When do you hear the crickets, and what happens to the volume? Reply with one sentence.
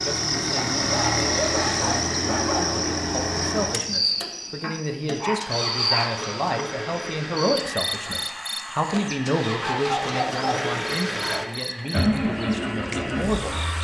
The crickets can be heard from 0.0 to 13.7 s, getting quieter.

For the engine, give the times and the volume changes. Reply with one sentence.
The engine can be heard from 0.0 to 13.7 s, getting quieter then louder.